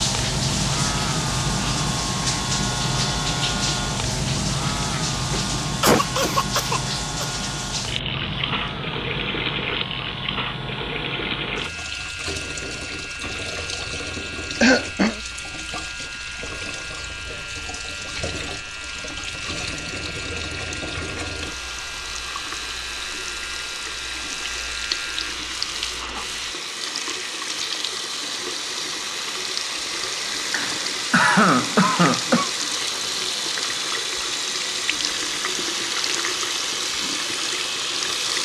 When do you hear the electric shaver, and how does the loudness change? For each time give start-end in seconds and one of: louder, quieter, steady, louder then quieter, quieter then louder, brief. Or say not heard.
0.0-26.6 quieter.